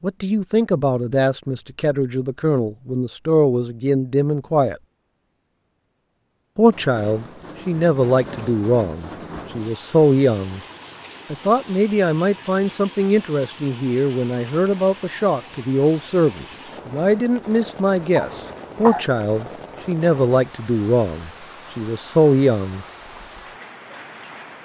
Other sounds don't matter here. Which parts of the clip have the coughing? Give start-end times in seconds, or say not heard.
18.1-19.1.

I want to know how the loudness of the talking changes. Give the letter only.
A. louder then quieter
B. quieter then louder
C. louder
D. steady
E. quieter
D.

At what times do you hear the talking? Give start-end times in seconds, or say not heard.
0.0-4.8, 6.5-10.6, 11.3-22.9.